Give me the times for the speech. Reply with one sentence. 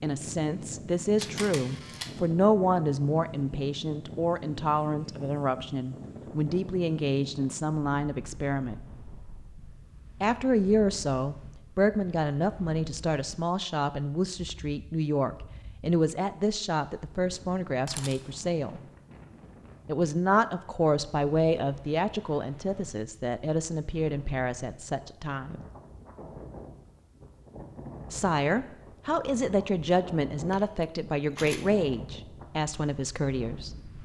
You can hear the speech from 0.0 to 8.8 s, from 10.2 to 18.8 s, from 19.9 to 25.6 s and from 28.1 to 33.7 s.